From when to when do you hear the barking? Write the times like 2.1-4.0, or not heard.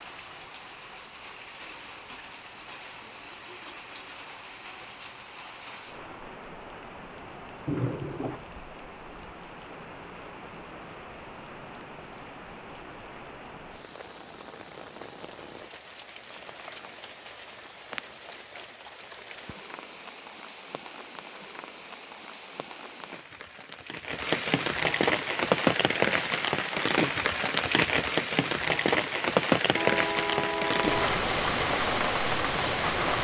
not heard.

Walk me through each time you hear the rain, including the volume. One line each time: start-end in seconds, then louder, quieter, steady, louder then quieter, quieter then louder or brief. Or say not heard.
0.0-33.1 louder.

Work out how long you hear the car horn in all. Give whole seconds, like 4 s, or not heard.
2 s.